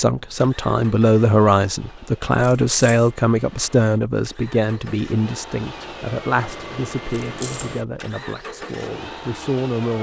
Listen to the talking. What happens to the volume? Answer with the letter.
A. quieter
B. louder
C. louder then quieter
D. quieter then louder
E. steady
A.